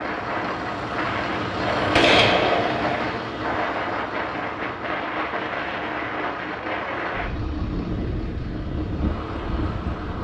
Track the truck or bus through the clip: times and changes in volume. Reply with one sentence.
The truck or bus can be heard from 0.0 to 10.2 s, getting quieter.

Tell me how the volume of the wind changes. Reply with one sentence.
The volume of the wind stays about the same.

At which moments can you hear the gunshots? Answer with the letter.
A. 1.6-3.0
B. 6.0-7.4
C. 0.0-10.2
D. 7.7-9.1
A.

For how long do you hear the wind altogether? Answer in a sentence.
You can hear the wind for 10 seconds altogether.